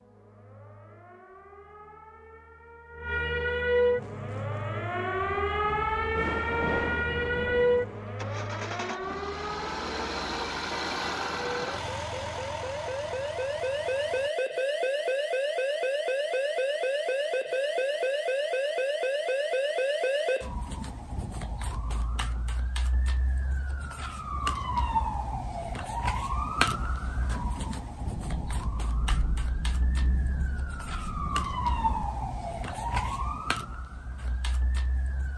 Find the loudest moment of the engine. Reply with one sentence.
The volume of the engine peaks at 11 seconds.